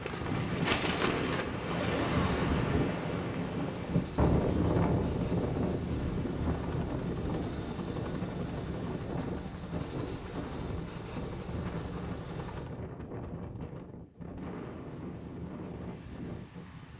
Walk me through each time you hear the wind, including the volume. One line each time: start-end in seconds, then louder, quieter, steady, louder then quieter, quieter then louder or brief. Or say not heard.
0.0-16.9 quieter.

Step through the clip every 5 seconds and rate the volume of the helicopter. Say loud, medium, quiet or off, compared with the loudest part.
loud, loud, loud, off.